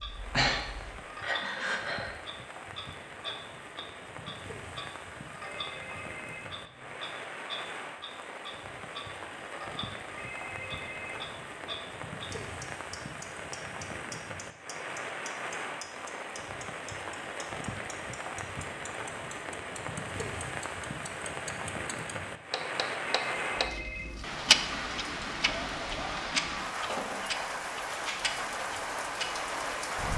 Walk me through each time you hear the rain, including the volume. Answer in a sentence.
You can hear the rain from 0.0 to 30.1 s, getting louder.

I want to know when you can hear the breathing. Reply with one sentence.
You can hear the breathing from 0.0 to 2.1 s.